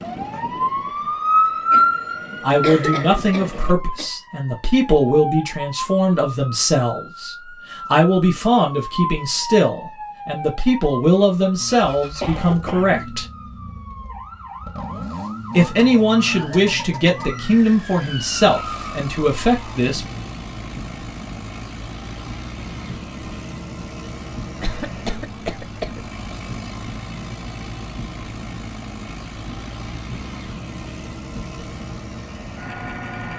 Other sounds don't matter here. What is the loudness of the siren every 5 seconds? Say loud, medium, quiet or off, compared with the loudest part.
loud, medium, quiet, quiet, quiet, quiet, quiet.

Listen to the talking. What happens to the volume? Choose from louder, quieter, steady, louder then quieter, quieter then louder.
steady.